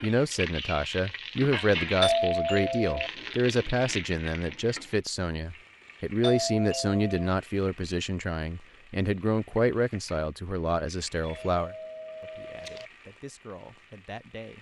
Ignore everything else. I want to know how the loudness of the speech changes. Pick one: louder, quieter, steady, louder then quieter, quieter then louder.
quieter.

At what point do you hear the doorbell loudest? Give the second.
2 s.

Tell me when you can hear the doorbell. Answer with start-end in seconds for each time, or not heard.
2.0-3.1, 6.2-7.3, 11.2-12.9.